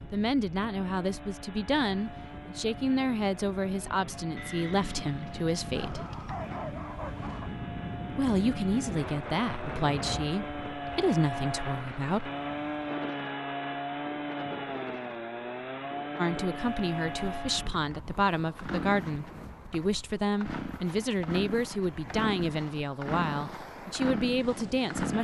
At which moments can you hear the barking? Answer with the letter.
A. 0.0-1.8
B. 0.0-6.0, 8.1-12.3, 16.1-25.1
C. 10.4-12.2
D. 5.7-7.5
D.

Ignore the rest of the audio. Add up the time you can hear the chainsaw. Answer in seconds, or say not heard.
25 s.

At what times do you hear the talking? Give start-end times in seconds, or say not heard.
0.0-6.0, 8.1-12.3, 16.1-25.1.